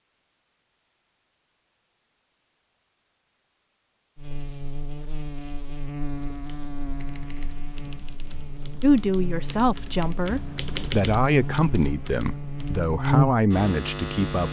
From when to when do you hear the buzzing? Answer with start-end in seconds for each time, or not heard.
4.2-14.4.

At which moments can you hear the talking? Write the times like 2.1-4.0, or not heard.
8.8-14.4.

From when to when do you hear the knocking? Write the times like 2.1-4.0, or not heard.
not heard.